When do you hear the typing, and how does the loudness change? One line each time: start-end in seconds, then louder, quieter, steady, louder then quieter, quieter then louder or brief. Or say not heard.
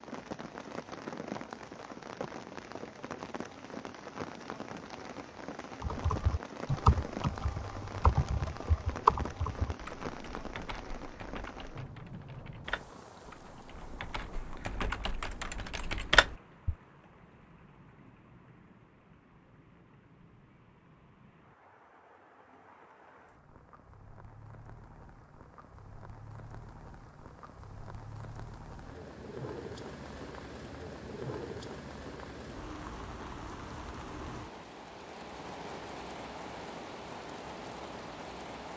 5.8-16.8 quieter then louder.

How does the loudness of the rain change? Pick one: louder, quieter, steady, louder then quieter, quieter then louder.
quieter then louder.